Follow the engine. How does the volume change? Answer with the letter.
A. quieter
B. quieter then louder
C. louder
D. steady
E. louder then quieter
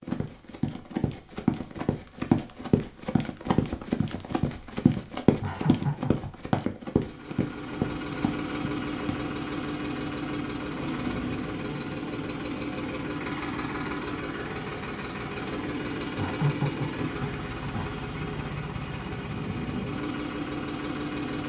D.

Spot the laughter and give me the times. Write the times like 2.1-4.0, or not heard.
5.4-6.3, 16.1-17.9.